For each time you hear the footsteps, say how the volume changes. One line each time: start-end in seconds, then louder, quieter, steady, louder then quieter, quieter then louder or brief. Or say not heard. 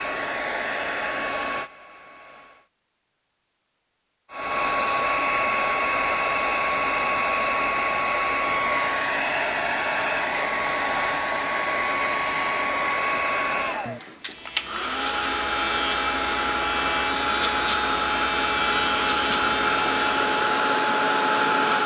not heard.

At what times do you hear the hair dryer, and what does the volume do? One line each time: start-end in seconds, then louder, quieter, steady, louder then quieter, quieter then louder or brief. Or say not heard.
0.0-2.7 brief
4.3-21.8 steady.